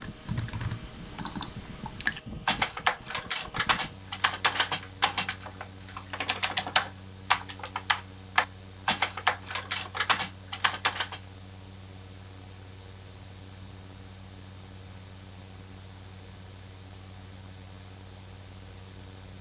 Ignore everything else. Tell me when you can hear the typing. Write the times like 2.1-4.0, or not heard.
0.0-11.2.